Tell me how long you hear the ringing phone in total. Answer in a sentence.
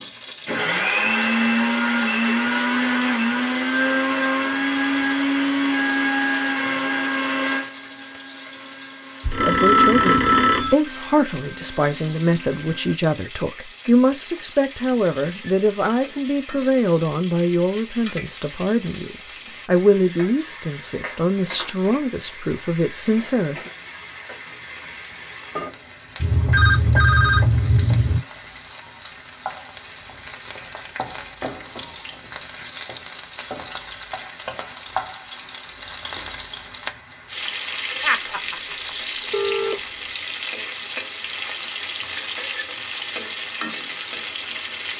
You can hear the ringing phone for 5 seconds altogether.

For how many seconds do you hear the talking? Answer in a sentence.
The talking can be heard for 14 seconds in total.